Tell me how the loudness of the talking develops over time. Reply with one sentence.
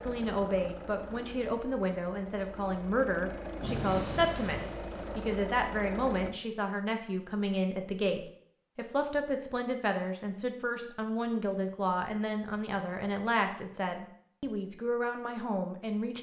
The loudness of the talking stays about the same.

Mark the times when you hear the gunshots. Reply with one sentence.
You can hear the gunshots from 3.6 to 5.2 s.